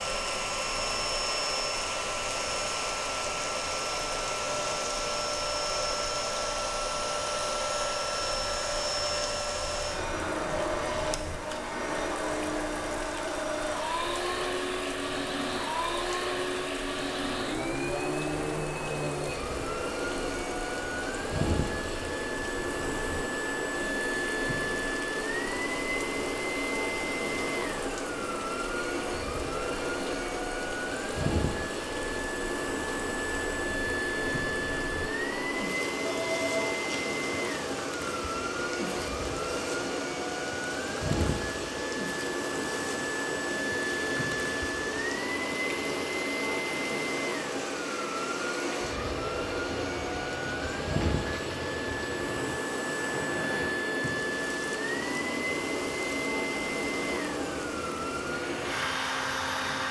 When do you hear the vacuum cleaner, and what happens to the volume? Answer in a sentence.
You can hear the vacuum cleaner from 0.0 to 59.8 s, at a steady volume.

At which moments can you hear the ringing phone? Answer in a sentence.
The ringing phone can be heard from 36.0 to 37.0 s.